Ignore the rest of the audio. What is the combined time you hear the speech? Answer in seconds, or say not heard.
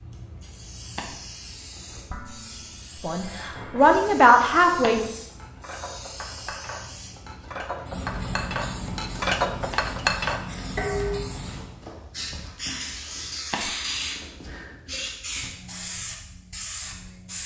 2 s.